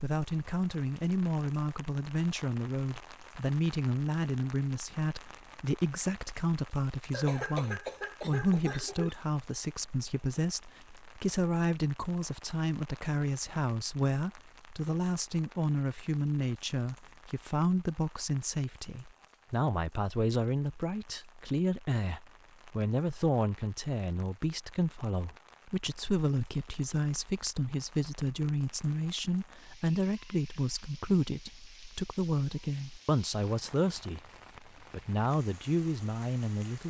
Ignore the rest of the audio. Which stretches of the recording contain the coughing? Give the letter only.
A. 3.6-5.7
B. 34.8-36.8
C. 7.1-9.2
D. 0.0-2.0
C.